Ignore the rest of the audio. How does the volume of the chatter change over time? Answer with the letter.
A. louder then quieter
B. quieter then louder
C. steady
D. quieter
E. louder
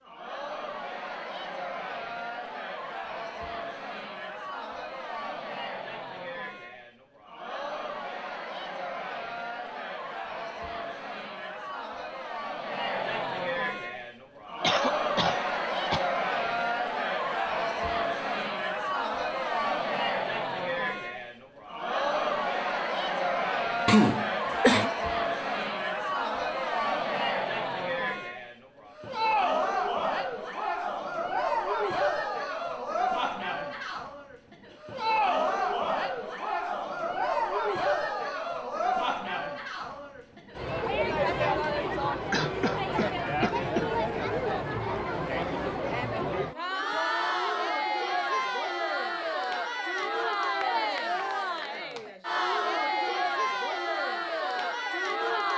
E.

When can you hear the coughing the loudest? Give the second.
24 s.